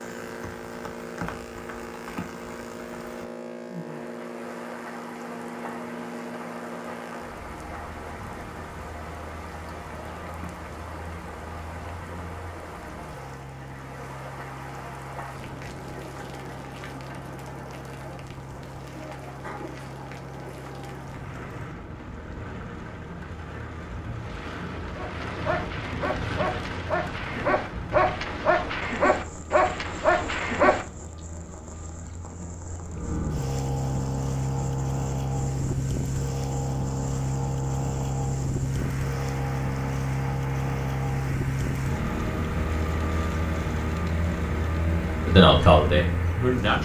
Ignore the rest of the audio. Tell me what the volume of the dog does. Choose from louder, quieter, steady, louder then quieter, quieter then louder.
louder.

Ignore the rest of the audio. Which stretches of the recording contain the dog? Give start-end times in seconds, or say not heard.
24.9-30.9.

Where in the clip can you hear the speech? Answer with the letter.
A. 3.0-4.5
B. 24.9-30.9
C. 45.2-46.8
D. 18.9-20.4
C.